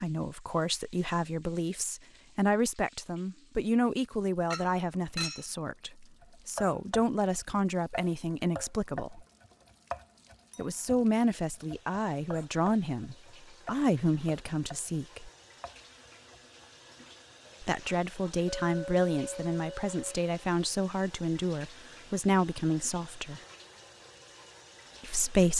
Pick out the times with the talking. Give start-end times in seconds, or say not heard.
0.0-9.2, 10.6-15.3, 17.6-23.4, 25.0-25.5.